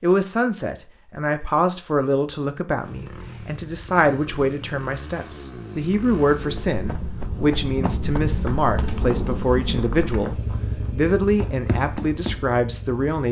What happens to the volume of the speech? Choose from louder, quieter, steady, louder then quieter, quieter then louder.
steady.